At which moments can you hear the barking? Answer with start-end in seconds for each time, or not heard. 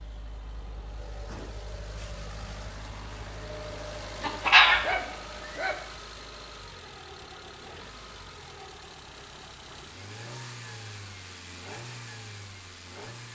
4.2-5.8.